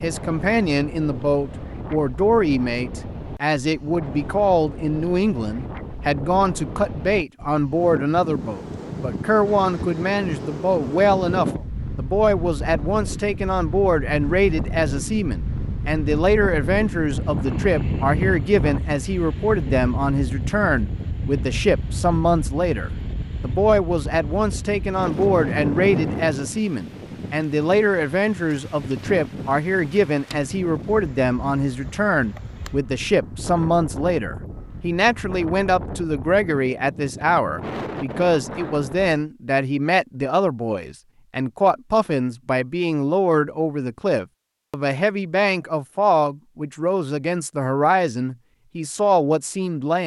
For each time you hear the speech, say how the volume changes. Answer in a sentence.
The speech can be heard from 0.0 to 50.0 s, at a steady volume.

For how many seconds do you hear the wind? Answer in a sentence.
The wind can be heard for 39 seconds in total.